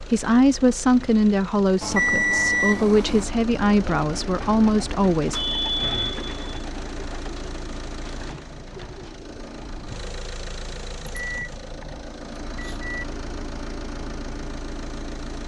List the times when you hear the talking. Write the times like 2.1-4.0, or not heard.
0.0-5.4.